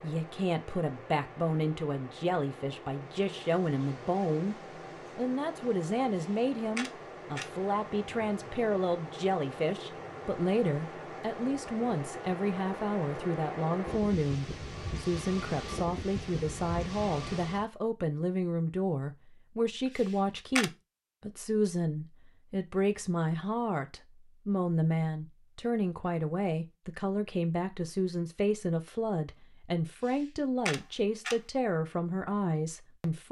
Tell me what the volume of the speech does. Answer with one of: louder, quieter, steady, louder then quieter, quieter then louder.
steady.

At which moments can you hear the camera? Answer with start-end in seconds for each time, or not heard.
6.2-7.5, 19.9-20.7, 30.1-31.4.